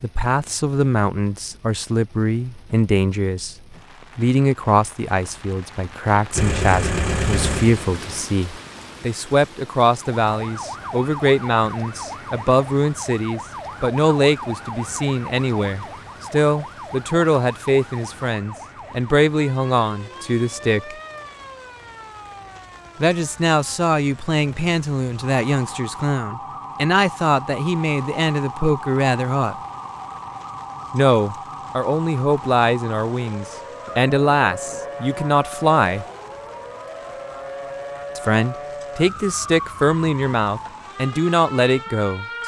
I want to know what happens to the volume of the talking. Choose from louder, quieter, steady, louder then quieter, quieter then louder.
steady.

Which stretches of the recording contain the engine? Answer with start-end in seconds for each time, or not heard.
6.3-8.2.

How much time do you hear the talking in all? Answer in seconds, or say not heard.
36 s.